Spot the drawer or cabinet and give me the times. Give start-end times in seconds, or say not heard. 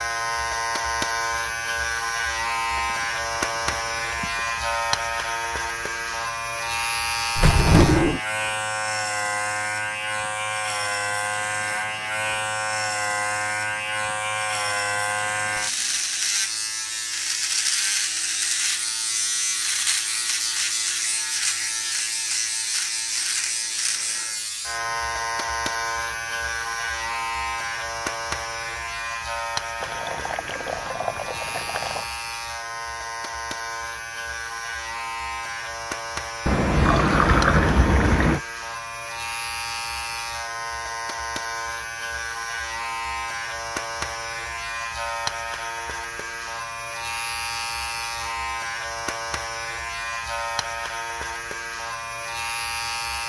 7.3-8.2.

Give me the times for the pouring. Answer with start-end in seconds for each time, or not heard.
2.8-4.6, 29.8-32.1, 36.5-38.4.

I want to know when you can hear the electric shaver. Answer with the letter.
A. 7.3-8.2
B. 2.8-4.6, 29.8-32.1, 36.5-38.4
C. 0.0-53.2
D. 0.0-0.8
C.